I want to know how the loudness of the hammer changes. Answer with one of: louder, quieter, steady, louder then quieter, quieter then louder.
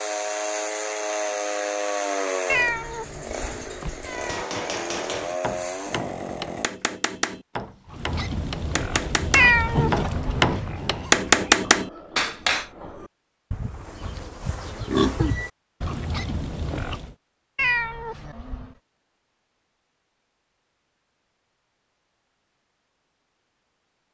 louder.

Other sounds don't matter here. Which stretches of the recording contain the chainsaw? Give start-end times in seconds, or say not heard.
0.0-6.7.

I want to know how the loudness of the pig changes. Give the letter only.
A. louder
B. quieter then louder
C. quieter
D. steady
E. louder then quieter
B.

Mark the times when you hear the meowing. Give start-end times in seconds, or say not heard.
2.5-4.5, 9.3-10.8, 17.6-18.8.